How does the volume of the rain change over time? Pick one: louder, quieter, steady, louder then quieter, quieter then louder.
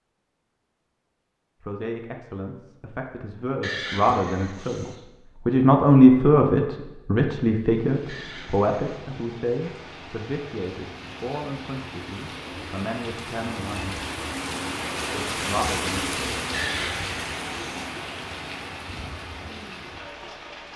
louder then quieter.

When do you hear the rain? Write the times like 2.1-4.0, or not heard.
7.6-20.7.